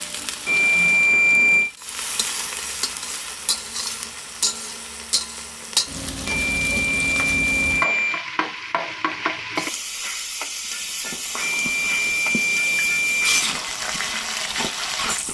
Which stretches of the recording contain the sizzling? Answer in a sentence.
You can hear the sizzling from 0.0 to 15.2 s.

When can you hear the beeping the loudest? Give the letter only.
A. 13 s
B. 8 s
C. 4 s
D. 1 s
D.